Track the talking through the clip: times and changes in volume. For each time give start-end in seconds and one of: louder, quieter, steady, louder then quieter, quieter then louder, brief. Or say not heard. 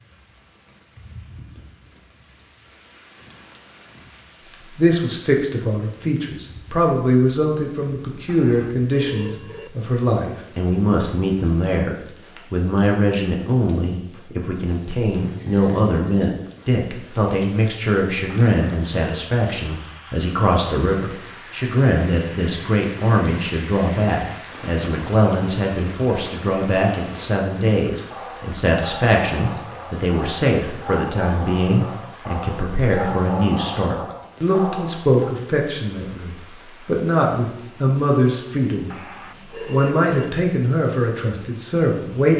4.8-38.9 steady
39.6-42.3 brief.